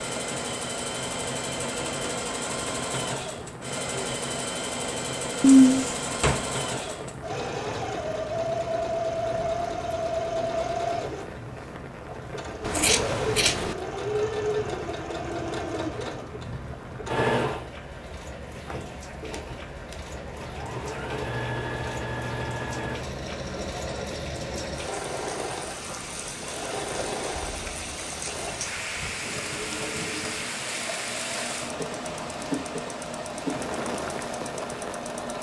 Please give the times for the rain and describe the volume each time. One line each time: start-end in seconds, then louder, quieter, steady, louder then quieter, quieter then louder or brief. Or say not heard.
0.0-35.3 louder.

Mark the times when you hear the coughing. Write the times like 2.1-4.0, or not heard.
5.4-6.5.